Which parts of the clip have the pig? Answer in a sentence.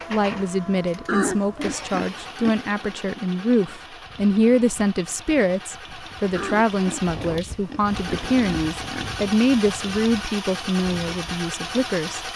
The pig can be heard from 1.1 to 2.6 s and from 6.3 to 9.2 s.